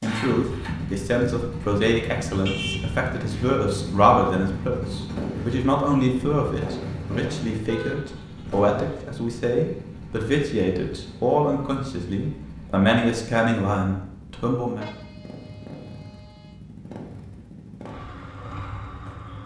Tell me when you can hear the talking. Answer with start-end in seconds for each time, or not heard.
0.0-14.8.